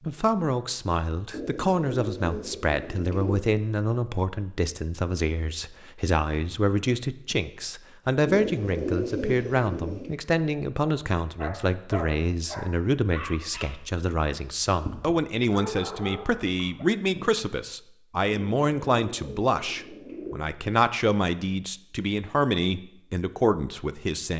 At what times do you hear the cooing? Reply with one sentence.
You can hear the cooing from 1.3 to 3.4 s, from 8.2 to 10.1 s and from 18.3 to 20.4 s.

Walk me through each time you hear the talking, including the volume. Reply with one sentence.
You can hear the talking from 0.0 to 24.3 s, at a steady volume.